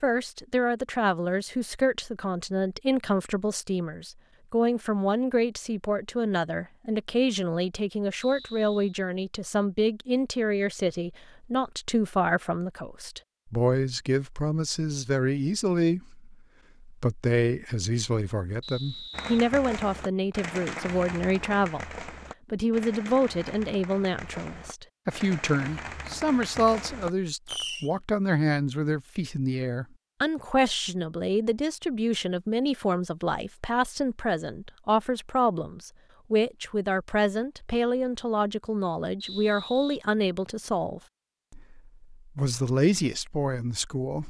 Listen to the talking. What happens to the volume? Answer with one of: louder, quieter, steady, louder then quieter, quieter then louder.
steady.